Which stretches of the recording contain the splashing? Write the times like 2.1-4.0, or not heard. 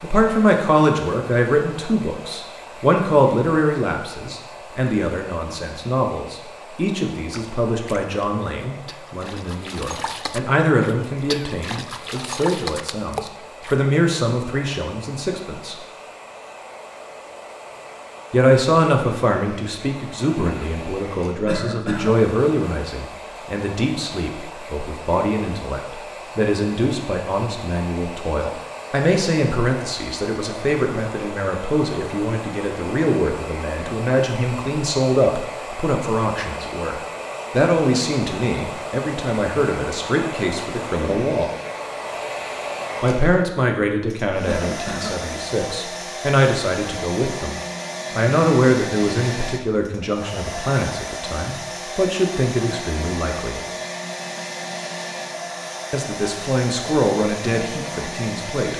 7.3-13.8.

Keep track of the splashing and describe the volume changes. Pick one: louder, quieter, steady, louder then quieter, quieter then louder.
louder.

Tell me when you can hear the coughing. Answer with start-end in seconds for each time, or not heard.
21.4-22.1, 44.4-45.2.